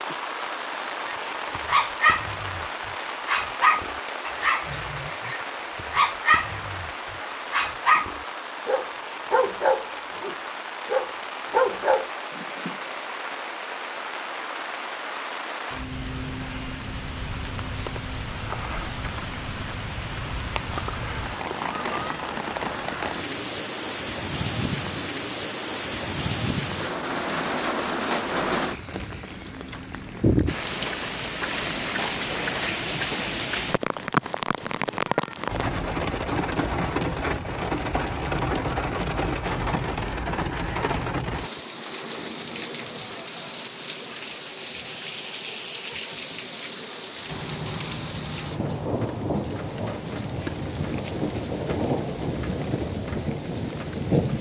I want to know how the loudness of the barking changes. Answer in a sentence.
The volume of the barking goes down, then up.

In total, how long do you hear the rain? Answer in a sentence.
The rain can be heard for 54 seconds in total.